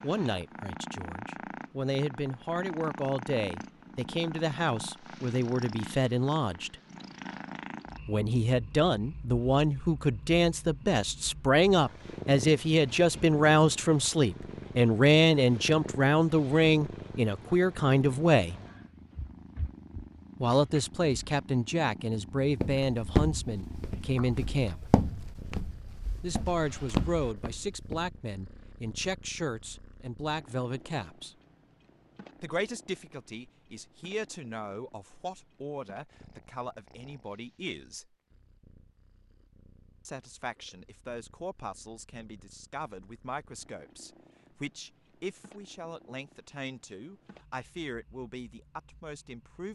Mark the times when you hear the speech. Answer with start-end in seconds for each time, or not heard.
0.0-6.8, 8.1-18.6, 20.4-24.9, 26.2-31.4, 32.4-38.1, 40.0-49.7.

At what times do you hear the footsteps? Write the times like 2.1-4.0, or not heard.
22.4-28.1.